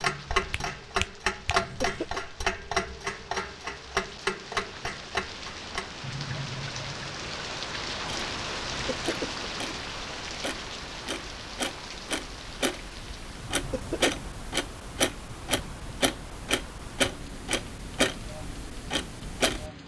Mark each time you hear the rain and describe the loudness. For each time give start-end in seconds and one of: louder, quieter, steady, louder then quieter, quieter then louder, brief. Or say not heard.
0.0-19.8 louder then quieter.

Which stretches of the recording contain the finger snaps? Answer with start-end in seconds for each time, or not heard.
0.4-1.6.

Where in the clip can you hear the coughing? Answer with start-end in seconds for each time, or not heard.
1.6-2.2, 8.6-9.4, 13.4-14.2.